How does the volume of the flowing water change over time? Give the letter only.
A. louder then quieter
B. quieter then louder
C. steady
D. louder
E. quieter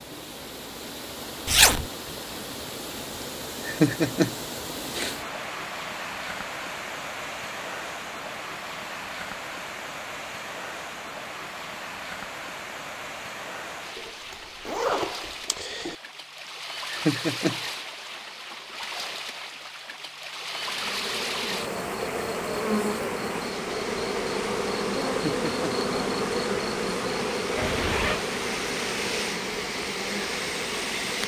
C.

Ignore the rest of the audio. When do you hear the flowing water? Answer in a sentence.
You can hear the flowing water from 0.0 to 31.2 s.